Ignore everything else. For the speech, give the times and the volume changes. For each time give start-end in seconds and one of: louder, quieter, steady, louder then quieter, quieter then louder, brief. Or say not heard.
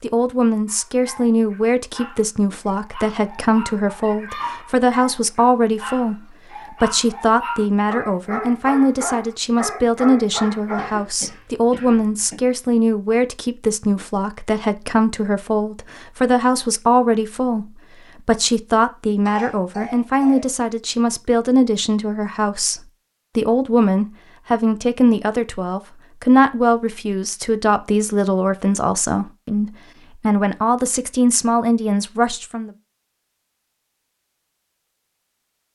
0.0-32.7 steady.